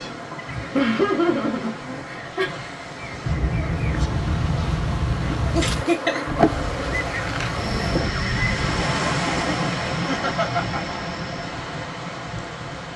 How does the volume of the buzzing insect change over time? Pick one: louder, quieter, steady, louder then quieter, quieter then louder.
louder then quieter.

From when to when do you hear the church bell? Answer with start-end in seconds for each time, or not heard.
not heard.